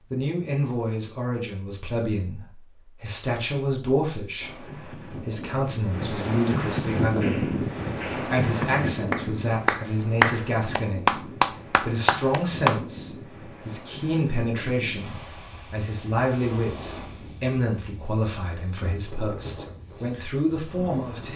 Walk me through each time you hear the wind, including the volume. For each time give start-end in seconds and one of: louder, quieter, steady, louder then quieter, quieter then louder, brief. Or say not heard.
4.4-21.3 quieter.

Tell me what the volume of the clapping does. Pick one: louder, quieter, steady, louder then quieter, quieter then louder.
louder then quieter.